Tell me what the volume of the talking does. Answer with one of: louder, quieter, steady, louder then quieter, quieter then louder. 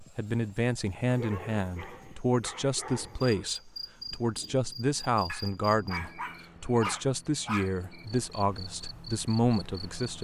steady.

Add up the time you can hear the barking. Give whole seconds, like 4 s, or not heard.
5 s.